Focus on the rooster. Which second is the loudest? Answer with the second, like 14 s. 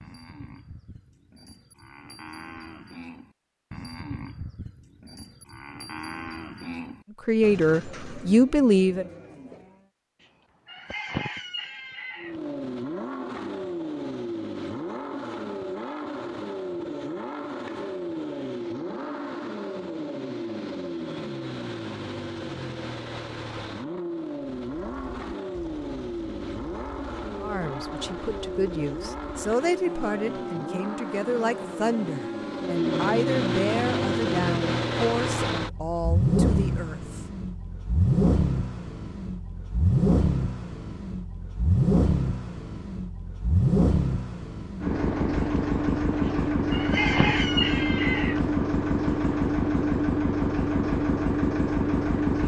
47 s.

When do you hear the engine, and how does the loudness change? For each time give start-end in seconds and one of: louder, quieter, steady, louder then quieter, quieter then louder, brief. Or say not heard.
12.2-52.4 louder.